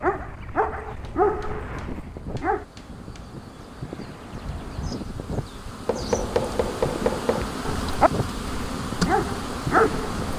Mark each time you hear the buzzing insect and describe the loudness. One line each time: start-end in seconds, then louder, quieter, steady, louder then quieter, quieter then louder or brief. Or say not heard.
0.0-10.3 louder.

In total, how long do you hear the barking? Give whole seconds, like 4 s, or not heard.
5 s.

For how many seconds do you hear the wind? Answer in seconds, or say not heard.
10 s.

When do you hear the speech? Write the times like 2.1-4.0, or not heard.
not heard.